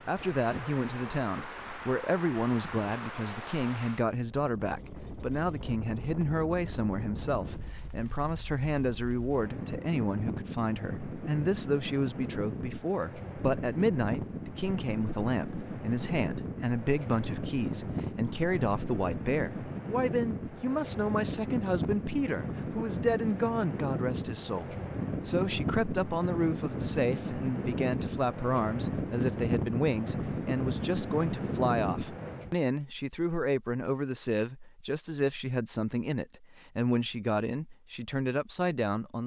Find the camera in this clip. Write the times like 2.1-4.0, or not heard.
not heard.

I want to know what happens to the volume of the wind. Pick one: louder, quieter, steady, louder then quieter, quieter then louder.
louder.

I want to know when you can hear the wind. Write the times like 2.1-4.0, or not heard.
0.0-32.5.